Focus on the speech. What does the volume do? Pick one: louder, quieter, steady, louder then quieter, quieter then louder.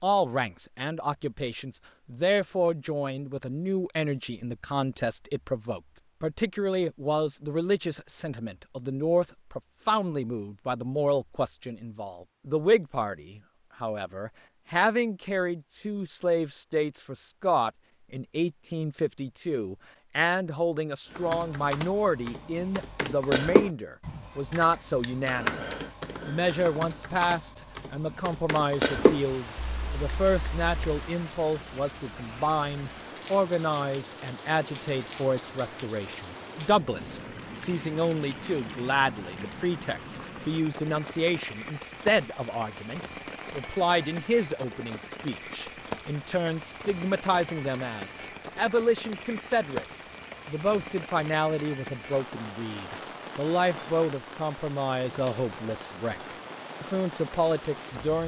steady.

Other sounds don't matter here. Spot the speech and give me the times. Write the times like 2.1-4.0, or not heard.
0.0-58.2.